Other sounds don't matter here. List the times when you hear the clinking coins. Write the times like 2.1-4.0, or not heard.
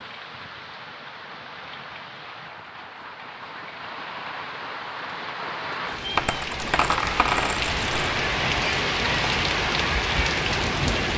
6.2-8.1.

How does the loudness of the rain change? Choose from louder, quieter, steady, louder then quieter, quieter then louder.
louder.